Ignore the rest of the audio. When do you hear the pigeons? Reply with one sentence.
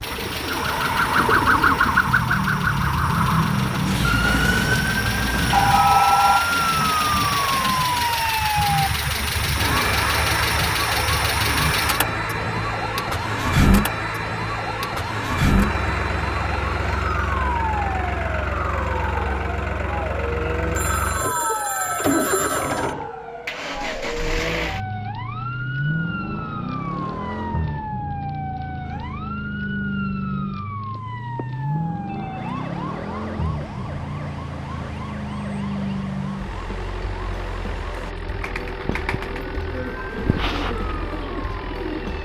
The pigeons can be heard from 0.0 to 2.1 s and from 38.2 to 42.1 s.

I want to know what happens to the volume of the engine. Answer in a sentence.
The volume of the engine goes down.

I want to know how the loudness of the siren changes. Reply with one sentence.
The loudness of the siren goes down.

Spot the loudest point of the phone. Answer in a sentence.
The volume of the phone peaks at 6 seconds.